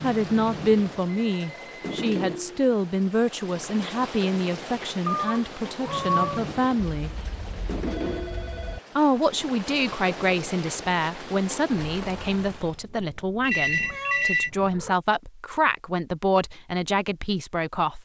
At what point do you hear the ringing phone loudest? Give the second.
14 s.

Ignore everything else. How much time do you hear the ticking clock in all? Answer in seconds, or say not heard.
not heard.